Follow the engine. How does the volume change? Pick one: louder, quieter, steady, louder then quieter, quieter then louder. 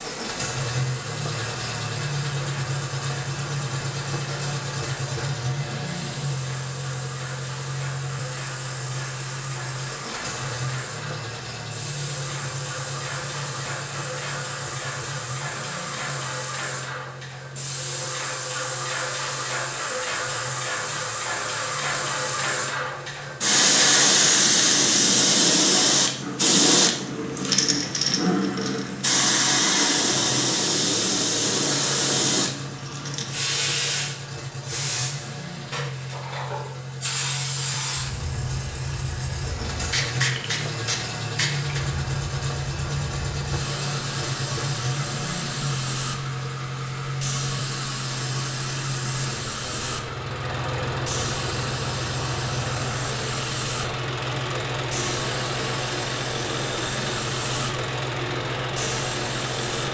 quieter then louder.